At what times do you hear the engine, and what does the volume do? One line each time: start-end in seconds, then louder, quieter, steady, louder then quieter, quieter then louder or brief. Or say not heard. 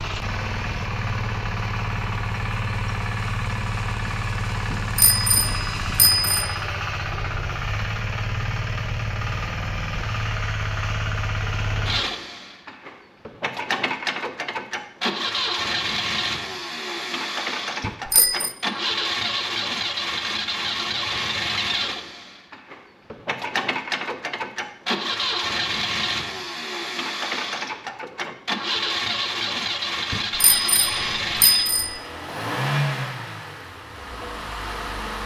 0.0-35.2 steady.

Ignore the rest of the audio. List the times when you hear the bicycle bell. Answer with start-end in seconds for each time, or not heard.
4.7-6.5, 17.8-18.6, 30.1-32.0.